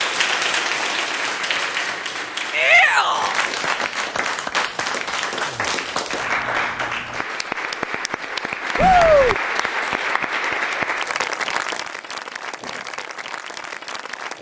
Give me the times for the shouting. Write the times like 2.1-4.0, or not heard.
2.5-3.4, 8.8-9.3.